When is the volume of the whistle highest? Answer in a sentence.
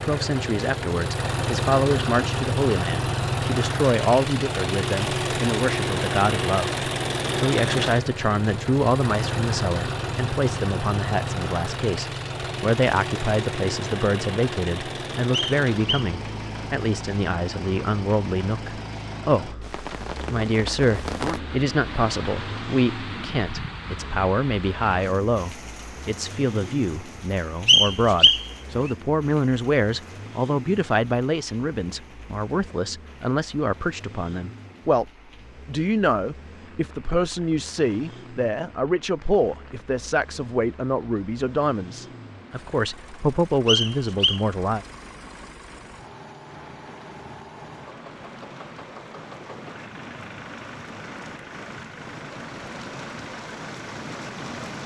The volume of the whistle peaks at 28 seconds.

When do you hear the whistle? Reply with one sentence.
You can hear the whistle from 15.3 to 16.1 s, from 27.6 to 28.4 s and from 43.6 to 44.5 s.